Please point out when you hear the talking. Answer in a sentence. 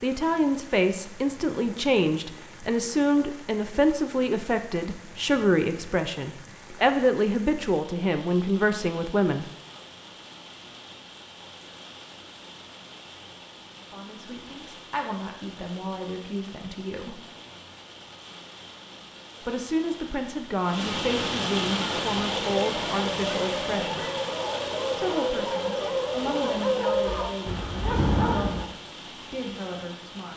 The talking can be heard from 0.0 to 9.4 s, from 13.8 to 17.2 s, from 19.4 to 24.1 s and from 24.9 to 30.3 s.